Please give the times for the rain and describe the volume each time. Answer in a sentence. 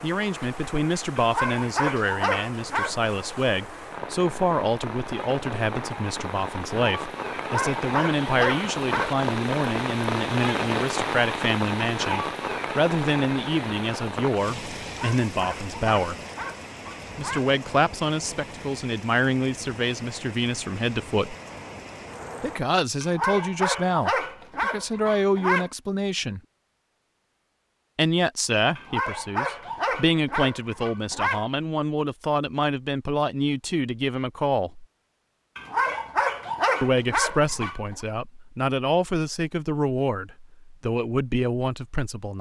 The rain can be heard from 0.0 to 22.6 s, getting louder then quieter.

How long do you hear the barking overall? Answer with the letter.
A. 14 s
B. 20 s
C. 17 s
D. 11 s
A.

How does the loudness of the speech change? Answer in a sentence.
The volume of the speech stays about the same.